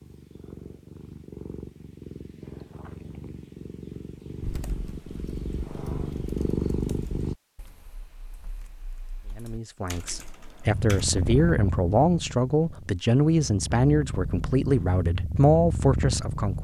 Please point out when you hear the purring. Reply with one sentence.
The purring can be heard from 0.0 to 7.3 s and from 10.7 to 16.6 s.